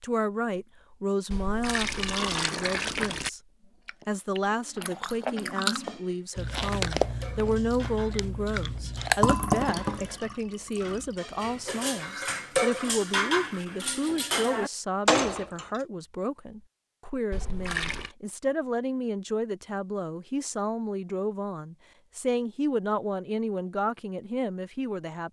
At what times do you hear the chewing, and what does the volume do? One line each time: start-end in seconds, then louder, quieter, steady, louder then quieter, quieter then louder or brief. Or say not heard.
3.6-9.3 louder then quieter.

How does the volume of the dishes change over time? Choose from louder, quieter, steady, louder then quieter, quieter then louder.
louder.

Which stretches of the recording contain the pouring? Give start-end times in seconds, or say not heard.
1.3-3.3, 9.2-11.1, 17.3-18.1.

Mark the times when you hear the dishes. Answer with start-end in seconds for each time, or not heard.
5.7-15.8.